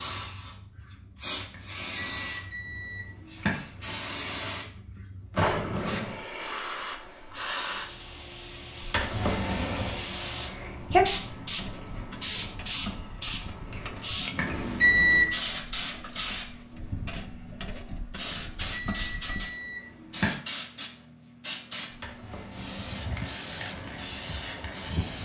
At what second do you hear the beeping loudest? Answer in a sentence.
The loudest moment of the beeping is at 15 seconds.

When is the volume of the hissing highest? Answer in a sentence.
The loudest moment of the hissing is at 11 seconds.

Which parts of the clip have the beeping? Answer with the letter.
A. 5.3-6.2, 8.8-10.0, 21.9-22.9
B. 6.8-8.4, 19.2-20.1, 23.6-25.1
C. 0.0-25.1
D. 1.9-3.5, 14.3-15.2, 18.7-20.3
D.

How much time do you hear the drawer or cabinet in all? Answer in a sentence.
The drawer or cabinet can be heard for 3 seconds in total.